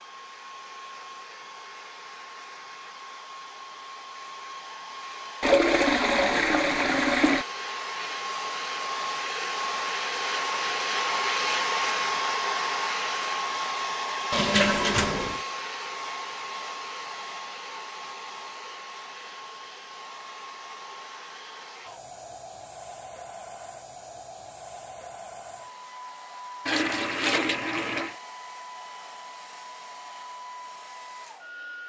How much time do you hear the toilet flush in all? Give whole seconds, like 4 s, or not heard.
5 s.